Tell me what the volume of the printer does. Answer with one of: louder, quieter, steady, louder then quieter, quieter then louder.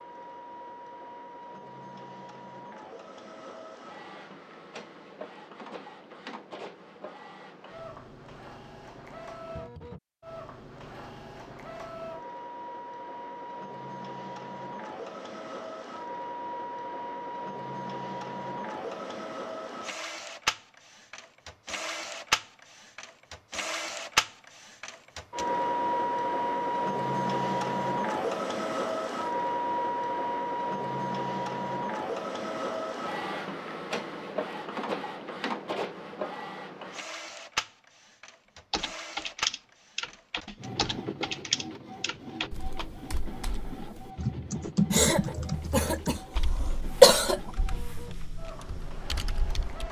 louder then quieter.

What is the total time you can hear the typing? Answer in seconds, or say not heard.
11 s.